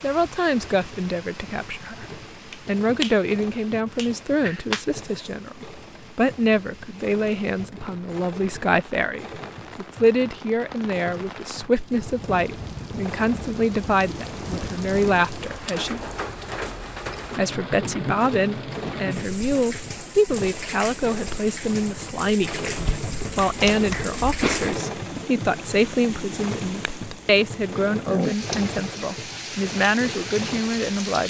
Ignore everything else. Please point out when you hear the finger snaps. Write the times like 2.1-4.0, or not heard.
2.5-3.1, 4.0-5.2, 22.8-24.8.